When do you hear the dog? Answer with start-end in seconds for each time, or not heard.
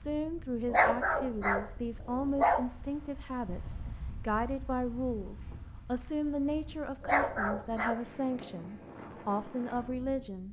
0.7-2.6, 7.0-8.6.